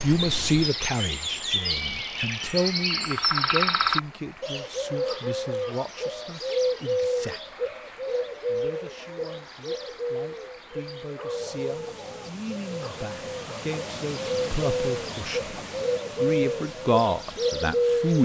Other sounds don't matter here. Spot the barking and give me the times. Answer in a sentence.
You can hear the barking from 11.2 to 13.8 s.